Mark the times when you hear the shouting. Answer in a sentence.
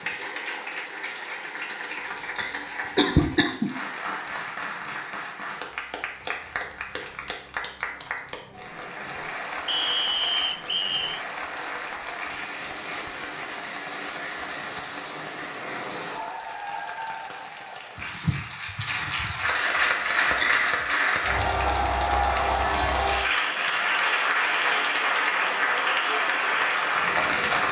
You can't hear the shouting here.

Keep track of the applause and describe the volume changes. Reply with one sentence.
The volume of the applause goes up.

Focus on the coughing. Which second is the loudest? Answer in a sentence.
The loudest moment of the coughing is at 3 seconds.